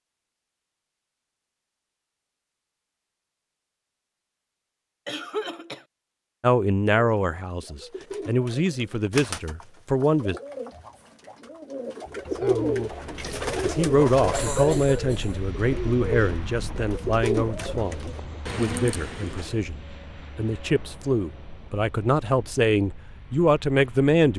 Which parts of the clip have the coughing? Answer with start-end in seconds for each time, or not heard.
5.0-5.8, 14.3-15.4.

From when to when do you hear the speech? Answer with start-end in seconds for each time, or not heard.
6.4-10.3, 13.6-24.3.